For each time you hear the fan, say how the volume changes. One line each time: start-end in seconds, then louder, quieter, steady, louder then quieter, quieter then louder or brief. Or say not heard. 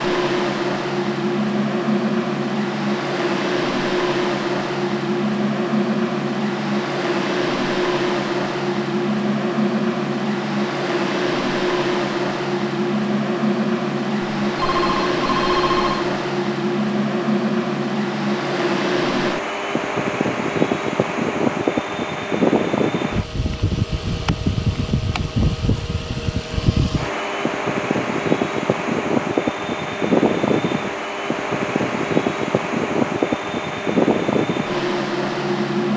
0.0-35.9 steady.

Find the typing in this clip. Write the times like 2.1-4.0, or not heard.
not heard.